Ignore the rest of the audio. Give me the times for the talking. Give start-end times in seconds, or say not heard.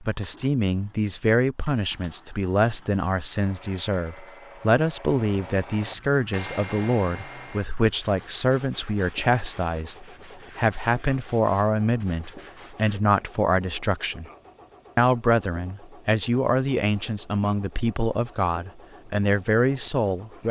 0.0-14.2, 14.9-20.4.